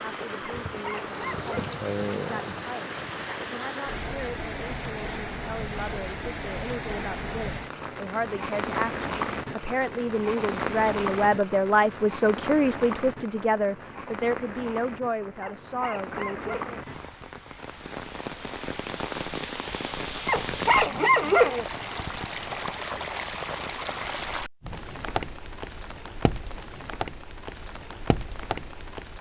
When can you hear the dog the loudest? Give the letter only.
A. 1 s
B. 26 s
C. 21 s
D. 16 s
C.